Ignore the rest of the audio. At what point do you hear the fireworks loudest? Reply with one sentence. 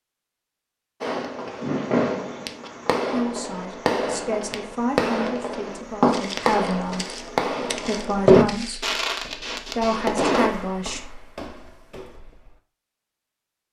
The loudest moment of the fireworks is at 8 seconds.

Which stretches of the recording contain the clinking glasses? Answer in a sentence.
You can't hear the clinking glasses here.